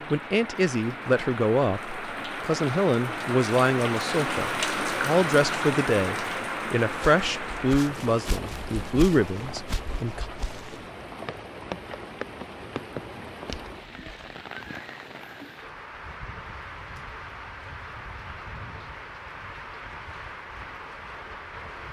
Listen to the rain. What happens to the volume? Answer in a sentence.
The volume of the rain goes down.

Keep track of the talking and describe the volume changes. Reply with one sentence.
The loudness of the talking stays about the same.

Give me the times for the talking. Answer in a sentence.
The talking can be heard from 0.1 to 10.2 s.